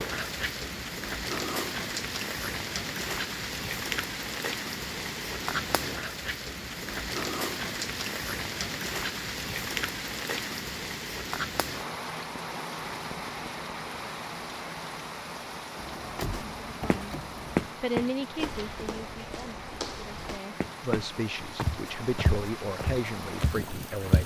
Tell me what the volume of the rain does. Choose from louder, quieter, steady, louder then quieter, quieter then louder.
quieter.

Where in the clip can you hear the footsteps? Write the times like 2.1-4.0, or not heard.
16.3-24.2.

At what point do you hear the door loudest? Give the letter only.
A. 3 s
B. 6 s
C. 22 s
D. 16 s
D.